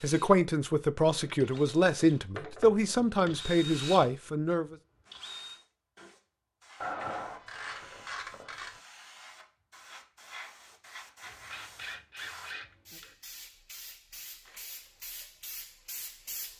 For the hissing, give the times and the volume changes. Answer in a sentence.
You can hear the hissing from 5.0 to 16.5 s, getting louder.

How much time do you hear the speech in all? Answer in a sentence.
You can hear the speech for 5 seconds altogether.